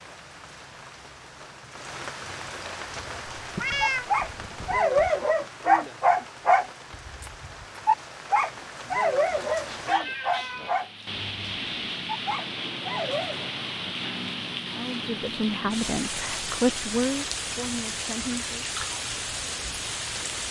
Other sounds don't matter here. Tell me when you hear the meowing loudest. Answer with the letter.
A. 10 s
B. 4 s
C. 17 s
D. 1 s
B.